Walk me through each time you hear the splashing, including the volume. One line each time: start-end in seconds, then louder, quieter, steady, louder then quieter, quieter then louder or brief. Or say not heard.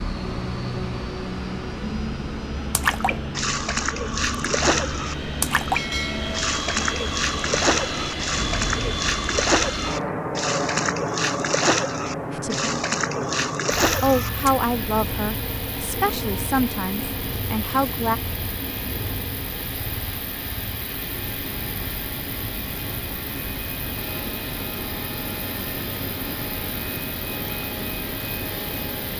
2.7-14.5 steady.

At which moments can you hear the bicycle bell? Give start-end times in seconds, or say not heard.
not heard.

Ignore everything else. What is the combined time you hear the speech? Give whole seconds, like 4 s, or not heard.
5 s.